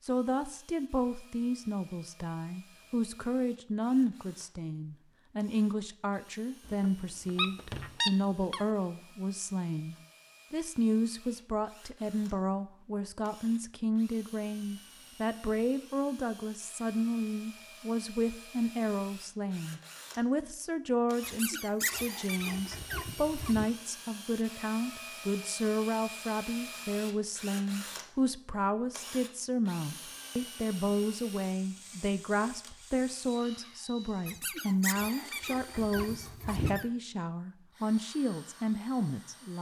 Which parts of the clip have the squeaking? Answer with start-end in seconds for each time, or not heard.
6.7-8.7, 21.2-23.7, 34.2-36.9.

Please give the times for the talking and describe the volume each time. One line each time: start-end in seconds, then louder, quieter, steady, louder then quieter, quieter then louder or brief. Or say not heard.
0.0-39.5 steady.